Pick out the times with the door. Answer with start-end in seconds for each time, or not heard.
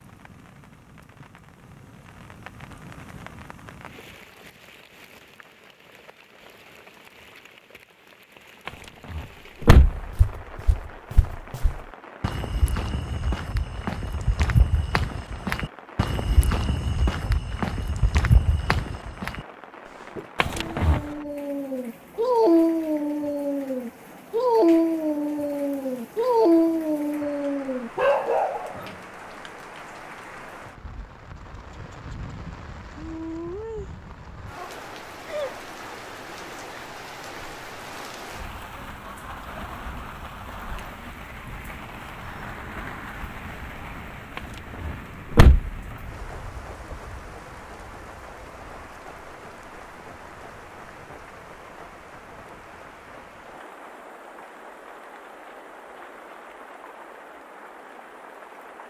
8.7-10.1, 20.4-21.0, 44.4-45.8.